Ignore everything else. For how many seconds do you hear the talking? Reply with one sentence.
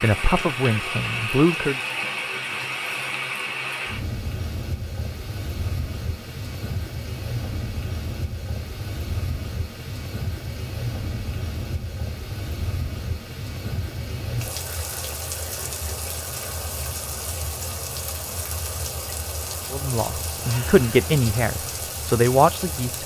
You can hear the talking for 5 seconds altogether.